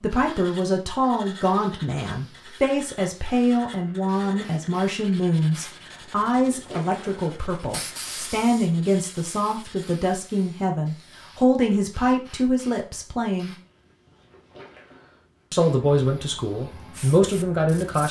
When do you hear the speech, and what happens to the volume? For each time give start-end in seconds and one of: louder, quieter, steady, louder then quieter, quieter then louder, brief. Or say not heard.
0.0-13.6 steady
15.5-18.0 brief.